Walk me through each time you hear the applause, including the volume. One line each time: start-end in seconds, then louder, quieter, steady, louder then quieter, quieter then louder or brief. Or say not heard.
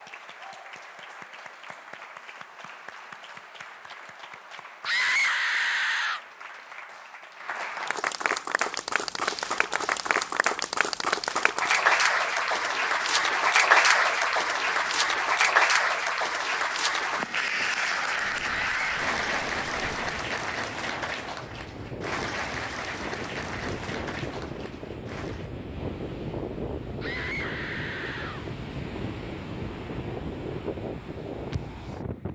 0.0-25.5 louder then quieter.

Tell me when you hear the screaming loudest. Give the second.
5 s.